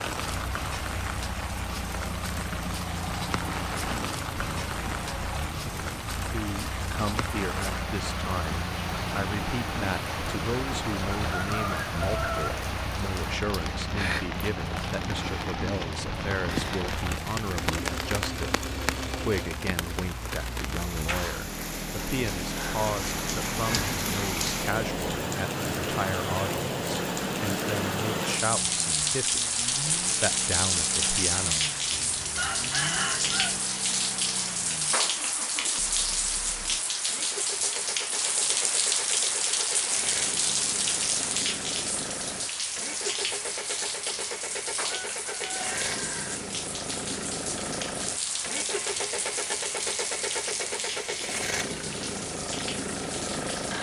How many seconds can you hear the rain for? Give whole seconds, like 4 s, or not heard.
54 s.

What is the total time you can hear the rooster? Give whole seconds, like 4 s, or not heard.
4 s.